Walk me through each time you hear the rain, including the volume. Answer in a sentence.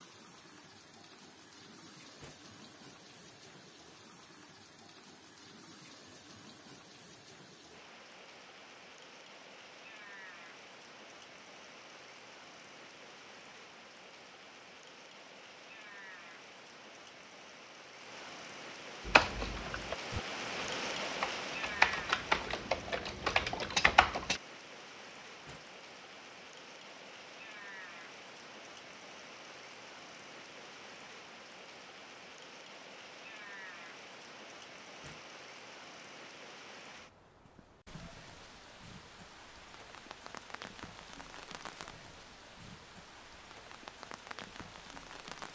The rain can be heard from 0.0 to 45.5 s, getting louder then quieter.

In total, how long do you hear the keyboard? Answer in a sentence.
You can hear the keyboard for 5 seconds altogether.